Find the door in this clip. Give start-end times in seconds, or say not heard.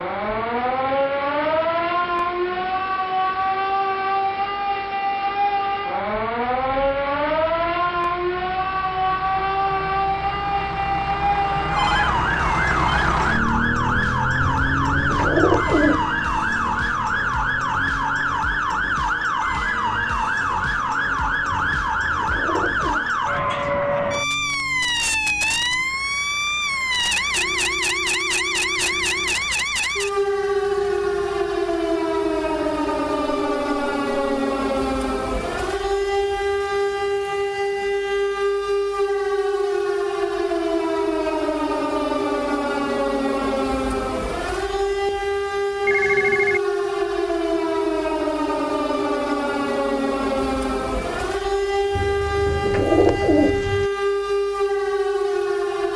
not heard.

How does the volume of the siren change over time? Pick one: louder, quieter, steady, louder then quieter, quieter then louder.
steady.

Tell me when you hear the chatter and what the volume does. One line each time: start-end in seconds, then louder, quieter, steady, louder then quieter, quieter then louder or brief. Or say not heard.
not heard.